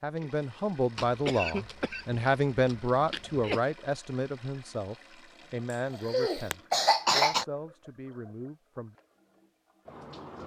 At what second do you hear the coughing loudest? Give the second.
7 s.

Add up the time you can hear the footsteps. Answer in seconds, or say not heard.
not heard.